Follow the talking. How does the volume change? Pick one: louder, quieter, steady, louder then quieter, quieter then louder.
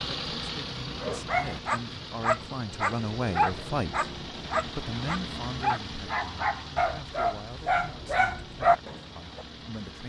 louder then quieter.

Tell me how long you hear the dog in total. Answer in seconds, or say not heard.
9 s.